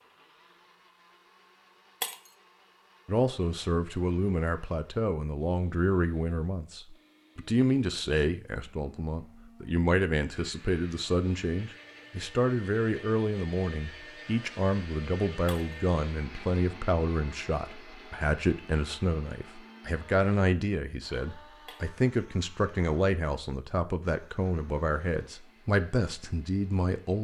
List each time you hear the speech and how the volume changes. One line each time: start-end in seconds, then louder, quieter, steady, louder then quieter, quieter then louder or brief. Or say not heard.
3.0-27.2 steady.